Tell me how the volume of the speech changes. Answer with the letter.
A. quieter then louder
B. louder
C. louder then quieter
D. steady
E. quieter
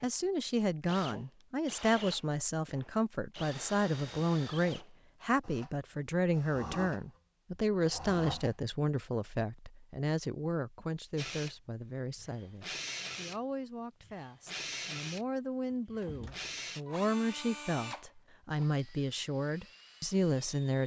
A.